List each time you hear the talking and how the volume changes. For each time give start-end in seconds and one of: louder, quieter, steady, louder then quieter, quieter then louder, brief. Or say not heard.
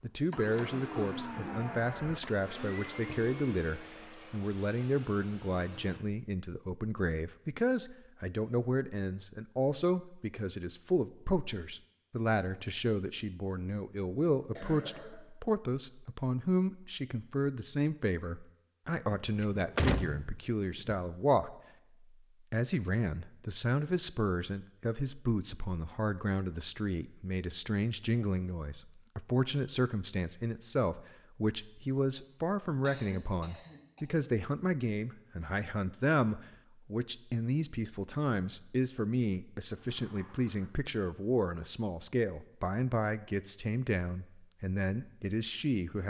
0.0-21.6 steady
22.5-46.0 steady.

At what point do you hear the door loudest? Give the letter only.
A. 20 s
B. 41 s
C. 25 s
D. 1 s
A.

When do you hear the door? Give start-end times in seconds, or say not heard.
19.2-20.9, 39.6-40.7.